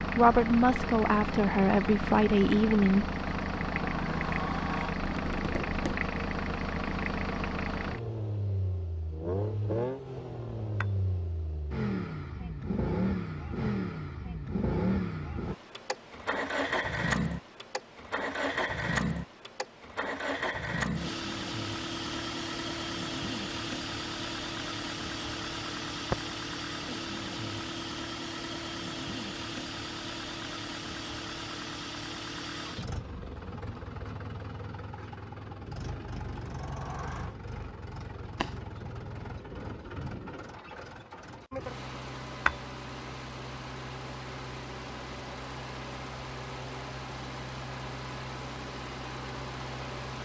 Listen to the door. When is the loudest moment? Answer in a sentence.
The loudest moment of the door is at 5 seconds.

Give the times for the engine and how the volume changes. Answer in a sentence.
You can hear the engine from 0.0 to 50.2 s, getting quieter.